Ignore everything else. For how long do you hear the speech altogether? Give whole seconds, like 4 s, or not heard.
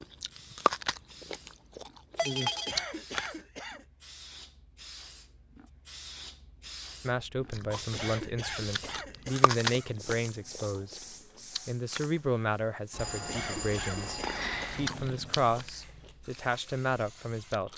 11 s.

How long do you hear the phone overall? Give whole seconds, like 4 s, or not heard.
3 s.